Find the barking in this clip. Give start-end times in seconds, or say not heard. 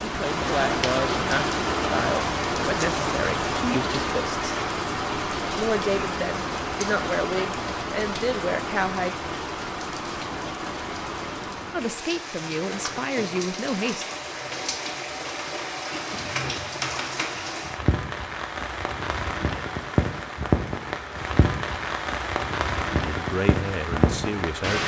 15.9-17.6.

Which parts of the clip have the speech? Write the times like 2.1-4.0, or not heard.
0.0-4.5, 5.5-9.2, 11.7-14.1, 23.1-24.8.